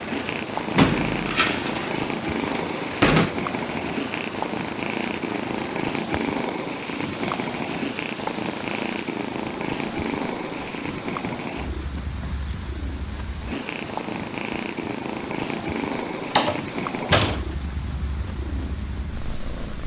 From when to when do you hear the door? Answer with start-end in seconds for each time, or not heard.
0.8-3.3, 16.2-17.4.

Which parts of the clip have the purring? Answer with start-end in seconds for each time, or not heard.
0.0-19.8.